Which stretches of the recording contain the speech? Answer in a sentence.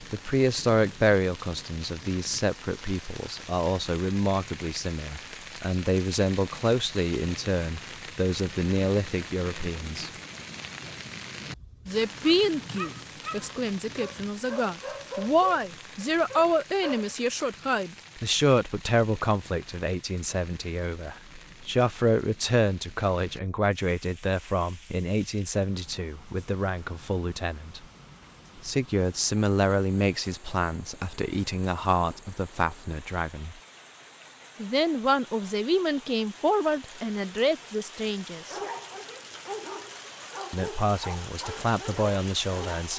The speech can be heard from 0.0 to 10.1 s, from 11.8 to 27.9 s, from 28.6 to 33.5 s, from 34.6 to 38.6 s and from 40.5 to 42.9 s.